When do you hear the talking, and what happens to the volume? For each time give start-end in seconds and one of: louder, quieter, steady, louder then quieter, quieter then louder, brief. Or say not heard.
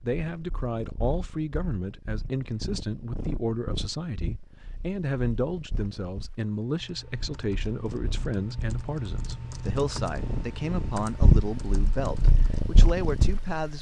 0.0-13.7 steady.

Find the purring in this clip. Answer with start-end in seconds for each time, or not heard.
0.0-13.7.